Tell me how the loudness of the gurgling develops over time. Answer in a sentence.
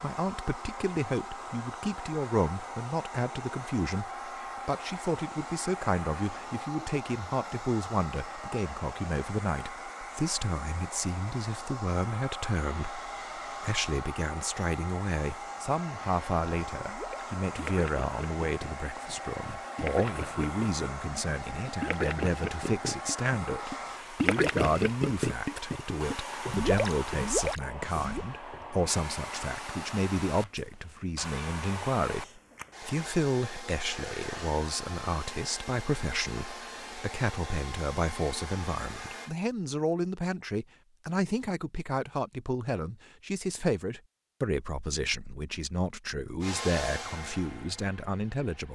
The loudness of the gurgling goes up.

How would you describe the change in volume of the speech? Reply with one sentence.
The volume of the speech stays about the same.